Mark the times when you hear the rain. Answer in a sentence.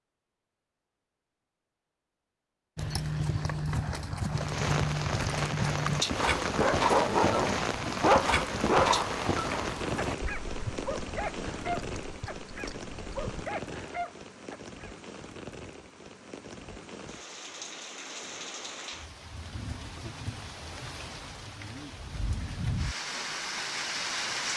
The rain can be heard from 4.3 to 24.5 s.